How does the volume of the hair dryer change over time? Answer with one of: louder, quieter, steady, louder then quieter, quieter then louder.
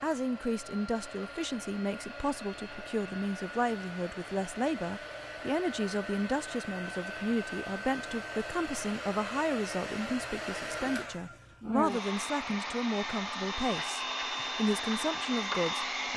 louder.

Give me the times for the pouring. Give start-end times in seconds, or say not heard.
not heard.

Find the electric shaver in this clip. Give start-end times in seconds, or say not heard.
not heard.